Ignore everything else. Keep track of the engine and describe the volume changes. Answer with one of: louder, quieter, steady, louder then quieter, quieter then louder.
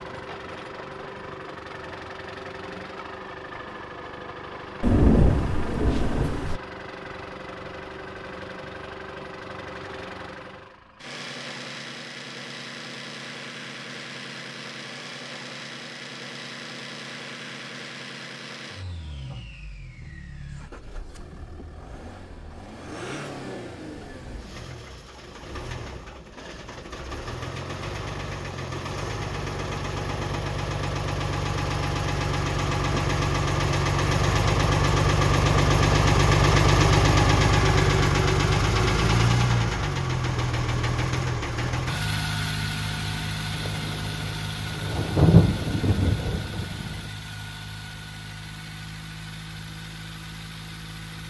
louder then quieter.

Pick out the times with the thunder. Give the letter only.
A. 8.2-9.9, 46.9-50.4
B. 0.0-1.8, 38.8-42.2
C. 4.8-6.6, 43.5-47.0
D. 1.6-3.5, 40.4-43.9
C.